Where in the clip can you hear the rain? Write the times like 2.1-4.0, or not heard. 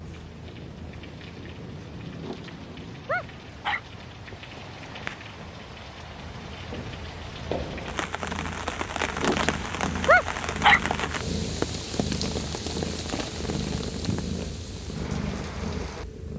0.0-16.1.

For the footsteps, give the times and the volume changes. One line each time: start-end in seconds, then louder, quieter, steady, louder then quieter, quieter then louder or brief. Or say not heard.
not heard.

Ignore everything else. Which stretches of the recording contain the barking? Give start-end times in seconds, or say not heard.
2.2-3.8, 9.2-10.8.